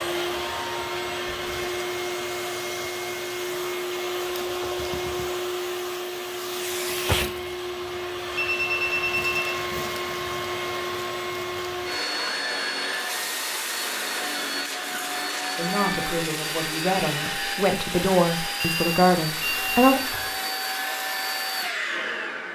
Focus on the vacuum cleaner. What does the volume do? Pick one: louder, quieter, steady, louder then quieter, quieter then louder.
steady.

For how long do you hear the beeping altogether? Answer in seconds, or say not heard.
3 s.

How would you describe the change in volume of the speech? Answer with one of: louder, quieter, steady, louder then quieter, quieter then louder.
louder.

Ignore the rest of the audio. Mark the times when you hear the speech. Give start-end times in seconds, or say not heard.
15.6-20.0.